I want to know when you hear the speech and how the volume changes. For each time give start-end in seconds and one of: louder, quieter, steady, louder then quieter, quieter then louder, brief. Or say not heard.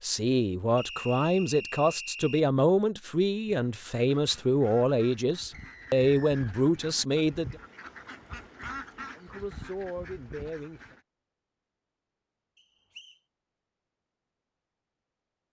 0.0-7.5 steady
9.2-10.9 brief.